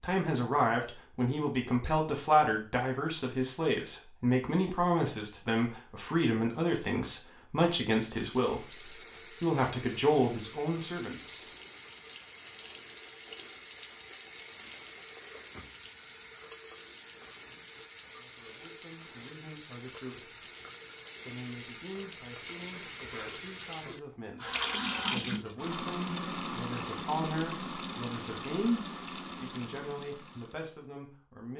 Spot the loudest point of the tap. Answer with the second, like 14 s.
25 s.